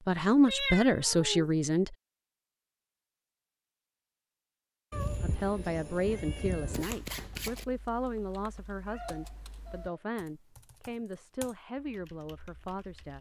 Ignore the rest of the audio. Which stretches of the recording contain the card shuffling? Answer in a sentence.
You can hear the card shuffling from 6.7 to 7.7 s.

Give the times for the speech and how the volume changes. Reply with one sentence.
The speech can be heard briefly from 0.1 to 1.9 s; and from 5.2 to 13.1 s, getting quieter.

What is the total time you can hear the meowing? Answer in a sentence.
The meowing can be heard for 4 seconds in total.